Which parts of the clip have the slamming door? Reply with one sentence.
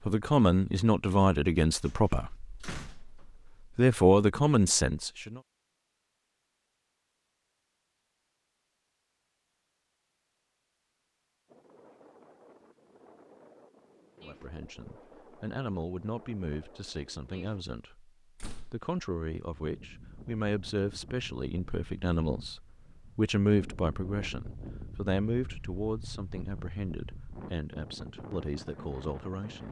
The slamming door can be heard from 1.9 to 3.2 s and from 18.4 to 18.8 s.